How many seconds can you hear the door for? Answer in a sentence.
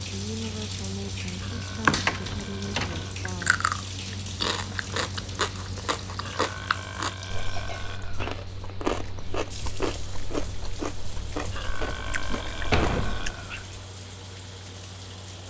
The door can be heard for 2 seconds in total.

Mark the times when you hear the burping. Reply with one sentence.
You can hear the burping from 1.4 to 3.2 s, from 6.2 to 8.4 s and from 11.5 to 13.7 s.